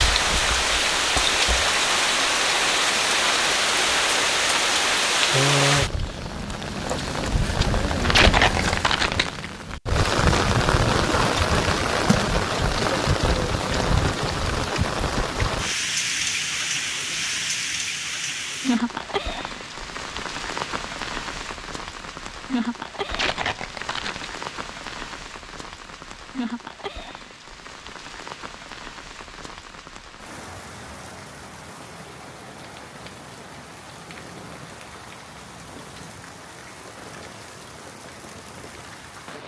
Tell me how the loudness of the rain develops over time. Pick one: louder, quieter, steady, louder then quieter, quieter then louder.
quieter.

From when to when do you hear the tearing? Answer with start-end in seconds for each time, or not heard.
8.0-9.4, 23.1-24.3.